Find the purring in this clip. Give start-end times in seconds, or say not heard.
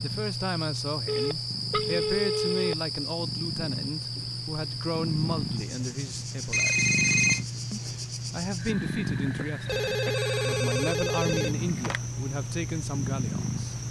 0.0-13.8.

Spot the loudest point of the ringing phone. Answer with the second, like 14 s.
7 s.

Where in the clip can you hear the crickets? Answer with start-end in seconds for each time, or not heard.
0.0-13.8.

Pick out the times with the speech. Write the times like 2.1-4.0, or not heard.
0.0-6.8, 7.7-13.8.